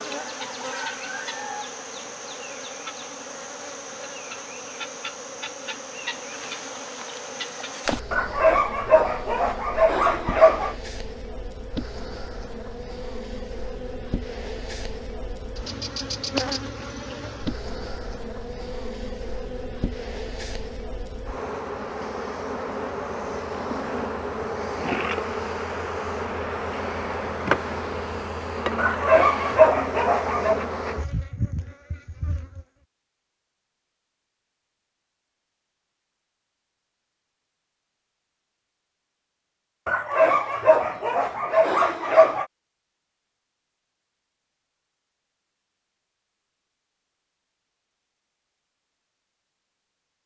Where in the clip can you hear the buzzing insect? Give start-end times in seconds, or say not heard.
0.0-32.6.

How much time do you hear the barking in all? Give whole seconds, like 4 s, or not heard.
7 s.